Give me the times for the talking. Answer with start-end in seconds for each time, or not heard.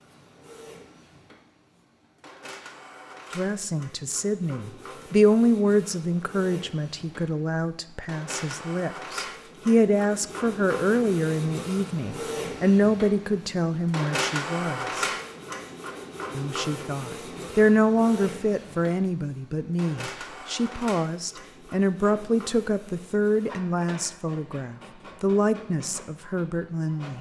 3.4-15.1, 16.4-27.1.